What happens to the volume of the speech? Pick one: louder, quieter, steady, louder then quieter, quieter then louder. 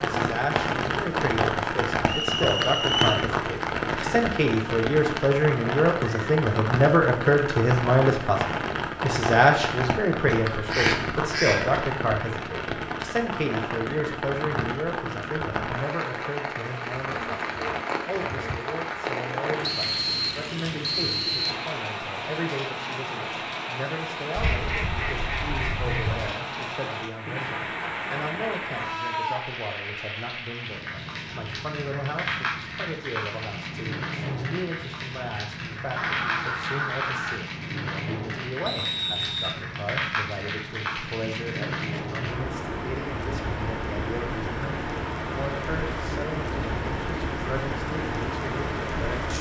quieter.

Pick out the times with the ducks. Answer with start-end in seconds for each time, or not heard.
10.6-11.8, 24.4-26.3, 36.0-37.4.